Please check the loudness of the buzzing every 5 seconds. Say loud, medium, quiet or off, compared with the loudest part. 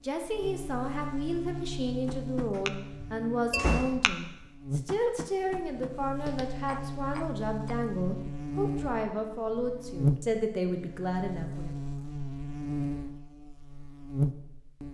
medium, medium, loud.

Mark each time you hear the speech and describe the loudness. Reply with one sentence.
You can hear the speech from 0.0 to 11.7 s, at a steady volume.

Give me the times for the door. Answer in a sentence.
You can hear the door from 2.5 to 4.2 s.